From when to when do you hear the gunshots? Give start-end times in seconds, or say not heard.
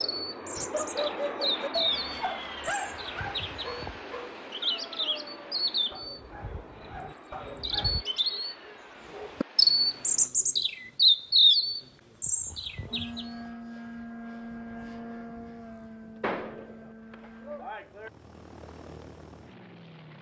16.2-18.1.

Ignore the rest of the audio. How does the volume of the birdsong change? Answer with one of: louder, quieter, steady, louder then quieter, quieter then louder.
louder.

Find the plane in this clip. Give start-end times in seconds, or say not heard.
0.0-10.3, 12.9-20.1.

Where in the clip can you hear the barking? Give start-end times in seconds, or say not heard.
0.6-8.1.